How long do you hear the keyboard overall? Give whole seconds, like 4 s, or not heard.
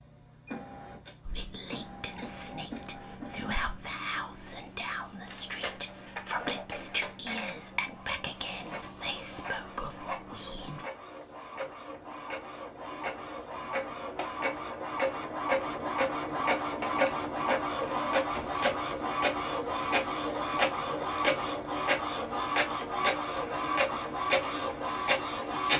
not heard.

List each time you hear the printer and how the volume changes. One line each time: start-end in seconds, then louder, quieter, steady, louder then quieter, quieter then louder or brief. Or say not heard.
0.0-25.7 louder.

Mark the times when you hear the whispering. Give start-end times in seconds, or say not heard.
1.2-10.9.